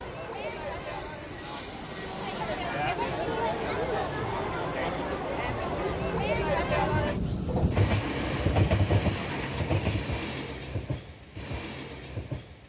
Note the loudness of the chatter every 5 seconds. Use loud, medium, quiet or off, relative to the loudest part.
loud, loud, off.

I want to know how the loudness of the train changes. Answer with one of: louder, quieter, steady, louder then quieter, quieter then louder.
louder then quieter.